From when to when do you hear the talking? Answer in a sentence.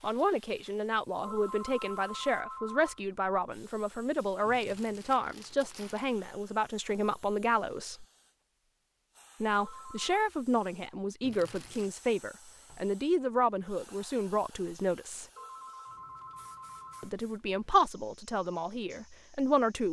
The talking can be heard from 0.0 to 8.1 s, from 9.4 to 15.2 s and from 17.0 to 19.8 s.